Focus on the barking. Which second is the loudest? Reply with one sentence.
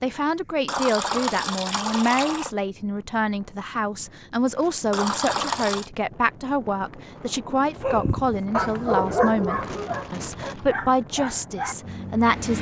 The loudest moment of the barking is at 9 seconds.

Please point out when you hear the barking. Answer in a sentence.
The barking can be heard from 7.8 to 12.5 s.